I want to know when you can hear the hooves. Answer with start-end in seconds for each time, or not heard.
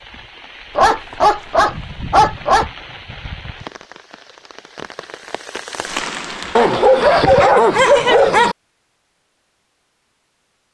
not heard.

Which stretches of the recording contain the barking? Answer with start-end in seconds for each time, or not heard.
0.8-2.7, 6.5-8.6.